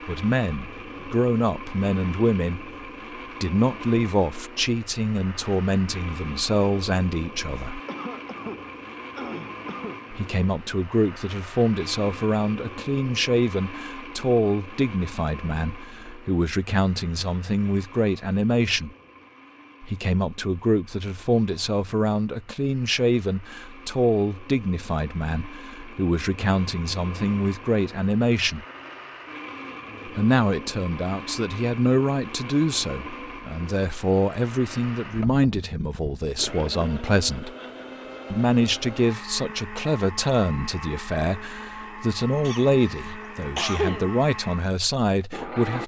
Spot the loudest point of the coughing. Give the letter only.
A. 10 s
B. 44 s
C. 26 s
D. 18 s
B.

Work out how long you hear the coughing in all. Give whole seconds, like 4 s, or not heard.
4 s.